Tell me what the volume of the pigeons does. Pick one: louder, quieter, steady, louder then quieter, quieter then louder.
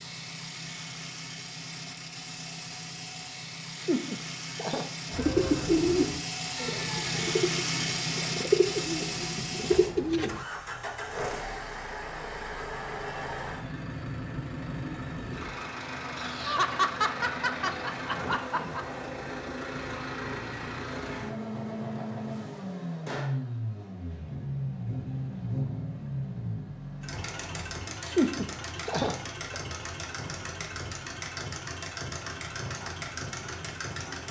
quieter then louder.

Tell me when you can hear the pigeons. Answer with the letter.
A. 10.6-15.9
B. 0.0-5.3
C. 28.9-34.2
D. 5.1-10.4
D.